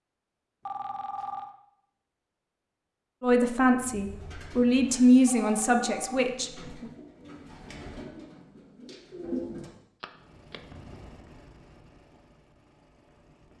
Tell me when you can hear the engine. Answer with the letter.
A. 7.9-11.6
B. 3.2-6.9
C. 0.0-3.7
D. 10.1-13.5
D.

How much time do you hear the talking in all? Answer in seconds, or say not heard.
4 s.